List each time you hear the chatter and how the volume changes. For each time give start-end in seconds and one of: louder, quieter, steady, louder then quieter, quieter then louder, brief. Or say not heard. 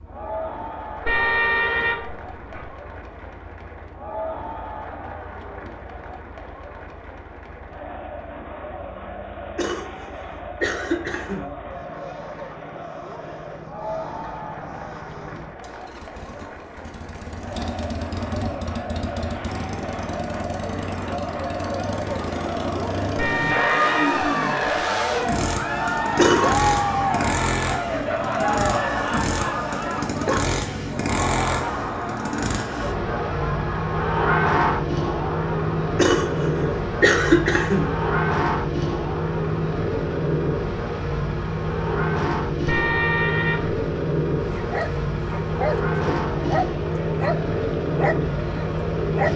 0.0-49.3 louder then quieter.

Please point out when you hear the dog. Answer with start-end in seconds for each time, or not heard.
44.5-49.3.